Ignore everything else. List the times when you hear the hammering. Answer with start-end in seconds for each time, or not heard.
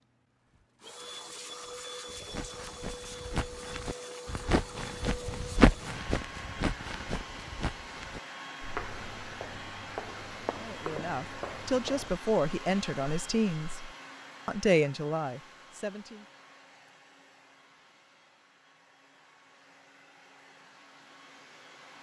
not heard.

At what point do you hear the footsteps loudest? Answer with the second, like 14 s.
6 s.